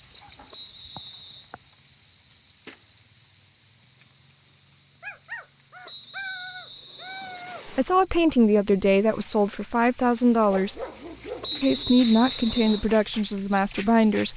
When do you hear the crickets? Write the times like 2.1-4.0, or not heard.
0.0-14.3.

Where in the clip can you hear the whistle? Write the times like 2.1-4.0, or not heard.
0.5-1.5, 5.8-7.8, 11.4-12.9.